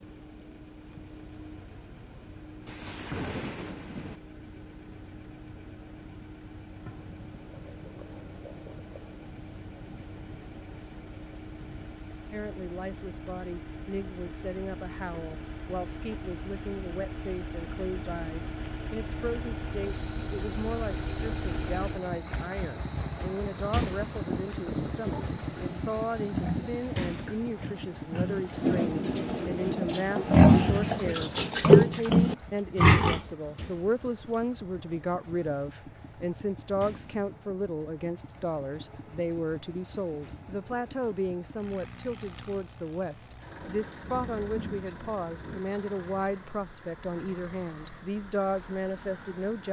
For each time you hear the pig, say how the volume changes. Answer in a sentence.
The pig can be heard from 25.1 to 33.2 s, getting louder.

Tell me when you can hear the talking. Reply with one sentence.
You can hear the talking from 12.2 to 49.6 s.